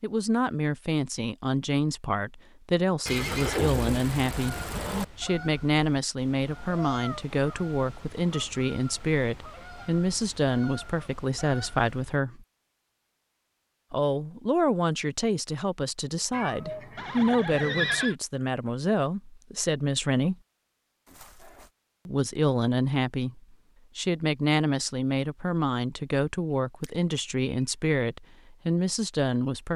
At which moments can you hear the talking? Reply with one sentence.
The talking can be heard from 0.0 to 12.4 s, from 13.9 to 20.4 s and from 22.1 to 29.7 s.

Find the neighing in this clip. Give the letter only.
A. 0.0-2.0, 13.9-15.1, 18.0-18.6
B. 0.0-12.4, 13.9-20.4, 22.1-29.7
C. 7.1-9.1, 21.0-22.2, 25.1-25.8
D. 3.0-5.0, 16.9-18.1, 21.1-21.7
D.